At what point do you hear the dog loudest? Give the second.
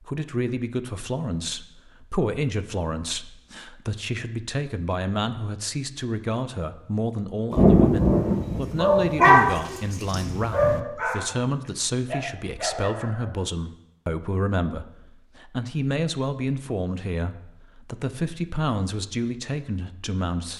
9 s.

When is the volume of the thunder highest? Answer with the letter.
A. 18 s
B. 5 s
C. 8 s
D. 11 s
C.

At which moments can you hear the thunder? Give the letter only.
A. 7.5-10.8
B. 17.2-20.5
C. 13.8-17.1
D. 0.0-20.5
A.